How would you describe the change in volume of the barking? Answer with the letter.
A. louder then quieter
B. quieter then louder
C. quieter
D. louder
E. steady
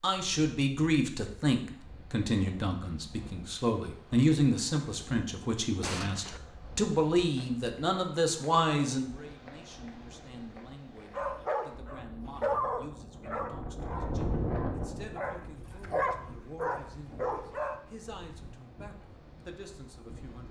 B.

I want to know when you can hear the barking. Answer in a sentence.
You can hear the barking from 11.1 to 17.8 s.